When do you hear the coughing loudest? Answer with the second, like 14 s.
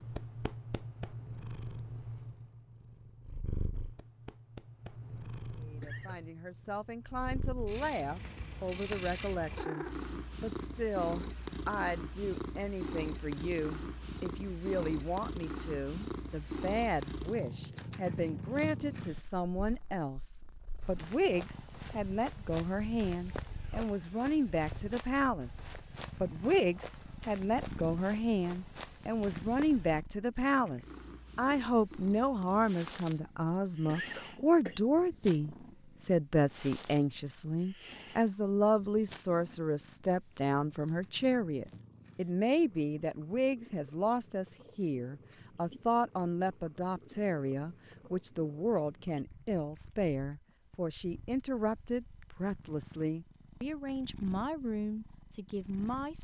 34 s.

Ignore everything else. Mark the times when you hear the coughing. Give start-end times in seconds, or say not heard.
5.8-6.2, 33.9-34.8.